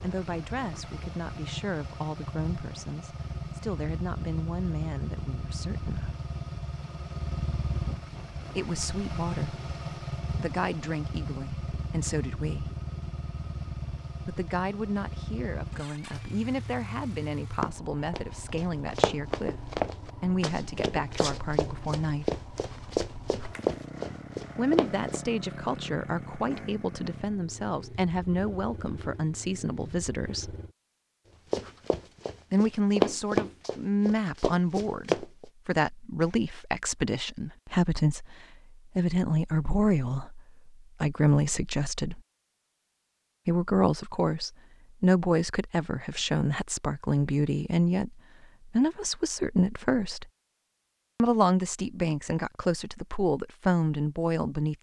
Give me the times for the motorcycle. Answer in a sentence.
You can hear the motorcycle from 0.0 to 30.8 s.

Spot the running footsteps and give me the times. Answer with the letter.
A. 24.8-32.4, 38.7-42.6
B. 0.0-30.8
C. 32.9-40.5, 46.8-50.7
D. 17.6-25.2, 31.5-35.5
D.